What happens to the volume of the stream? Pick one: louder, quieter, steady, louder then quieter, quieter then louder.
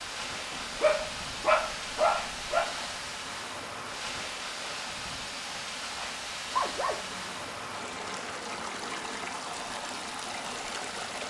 steady.